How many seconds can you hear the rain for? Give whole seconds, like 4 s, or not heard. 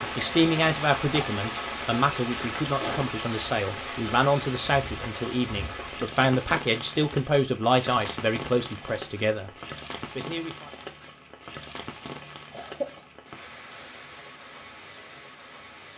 16 s.